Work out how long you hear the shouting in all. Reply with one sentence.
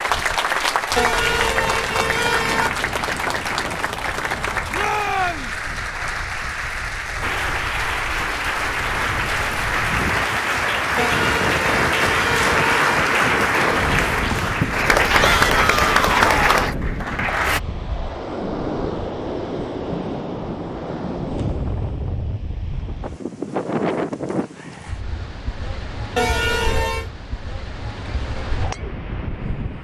You can hear the shouting for 2 seconds altogether.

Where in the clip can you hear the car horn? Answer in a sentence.
You can hear the car horn from 0.9 to 2.7 s, from 10.9 to 13.0 s and from 26.1 to 27.1 s.